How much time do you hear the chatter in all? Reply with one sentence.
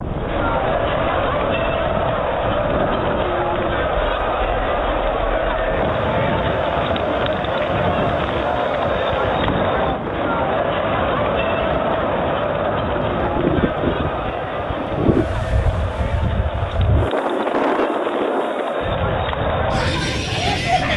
You can hear the chatter for 21 seconds altogether.